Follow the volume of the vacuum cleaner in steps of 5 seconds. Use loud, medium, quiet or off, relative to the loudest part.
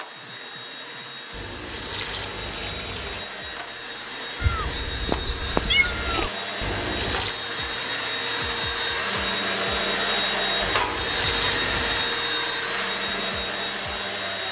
medium, loud, loud.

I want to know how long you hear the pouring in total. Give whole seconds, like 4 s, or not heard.
4 s.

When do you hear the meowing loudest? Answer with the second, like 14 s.
6 s.